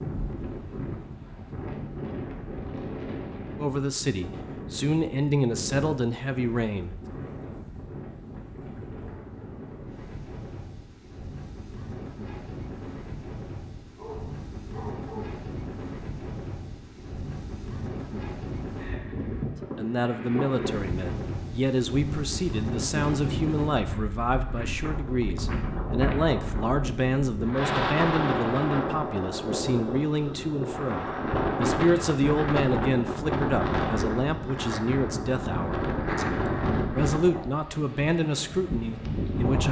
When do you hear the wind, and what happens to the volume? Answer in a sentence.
The wind can be heard from 0.0 to 39.6 s, getting louder.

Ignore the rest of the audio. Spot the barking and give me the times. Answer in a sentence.
The barking can be heard from 13.9 to 15.4 s.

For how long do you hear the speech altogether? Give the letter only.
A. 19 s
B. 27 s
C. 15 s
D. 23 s
D.